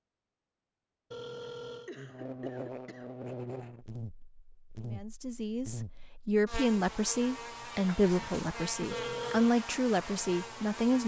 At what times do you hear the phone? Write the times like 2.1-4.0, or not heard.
1.1-1.9, 8.9-9.6.